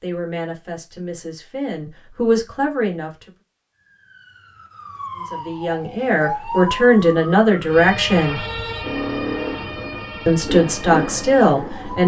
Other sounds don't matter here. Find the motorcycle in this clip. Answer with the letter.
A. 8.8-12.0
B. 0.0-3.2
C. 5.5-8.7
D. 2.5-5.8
A.